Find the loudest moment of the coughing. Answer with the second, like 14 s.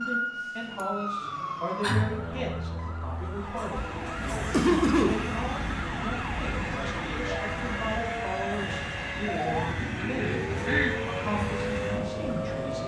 5 s.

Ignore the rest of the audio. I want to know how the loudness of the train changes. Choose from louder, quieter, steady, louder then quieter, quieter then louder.
steady.